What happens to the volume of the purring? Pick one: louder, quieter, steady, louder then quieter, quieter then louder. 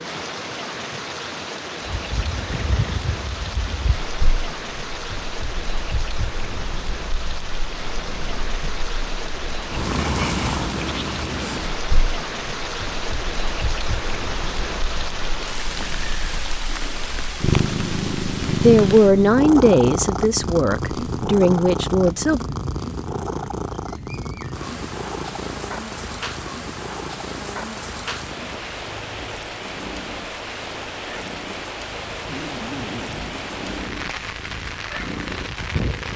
louder then quieter.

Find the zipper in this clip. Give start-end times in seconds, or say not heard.
32.3-33.5.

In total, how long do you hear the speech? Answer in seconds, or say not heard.
4 s.